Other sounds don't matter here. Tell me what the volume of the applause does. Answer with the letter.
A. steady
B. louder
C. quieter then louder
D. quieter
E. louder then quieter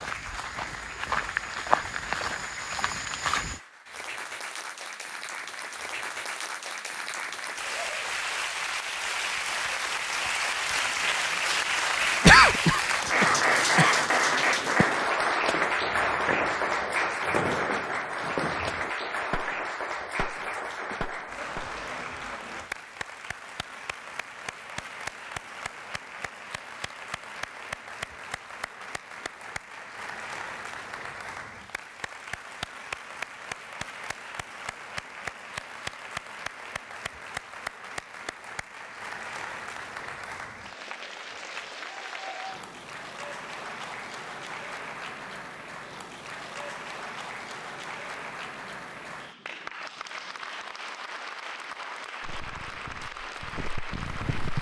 E.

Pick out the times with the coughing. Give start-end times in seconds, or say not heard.
12.2-13.9.